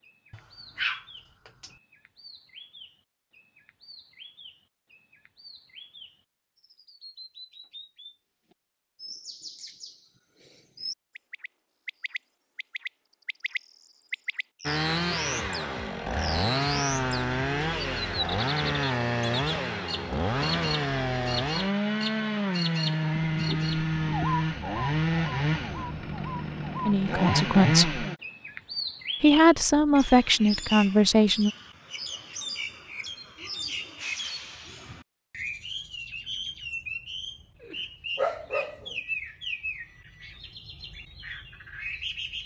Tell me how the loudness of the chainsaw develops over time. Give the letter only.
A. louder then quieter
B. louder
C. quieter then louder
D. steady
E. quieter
D.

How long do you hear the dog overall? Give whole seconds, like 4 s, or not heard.
3 s.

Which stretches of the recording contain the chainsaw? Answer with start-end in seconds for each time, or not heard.
14.7-28.1.